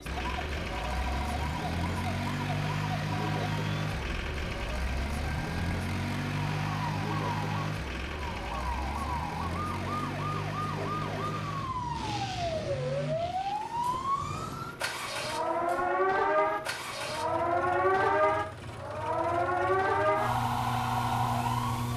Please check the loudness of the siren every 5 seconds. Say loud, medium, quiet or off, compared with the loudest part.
quiet, medium, medium, loud, loud.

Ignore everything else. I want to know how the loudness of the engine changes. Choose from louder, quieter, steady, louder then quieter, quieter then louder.
quieter.